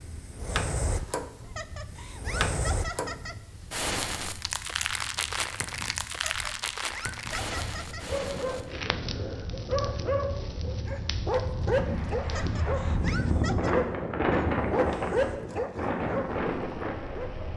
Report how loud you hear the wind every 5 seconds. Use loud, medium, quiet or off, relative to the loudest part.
quiet, quiet, loud, loud.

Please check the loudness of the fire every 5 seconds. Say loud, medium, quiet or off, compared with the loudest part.
loud, loud, quiet, quiet.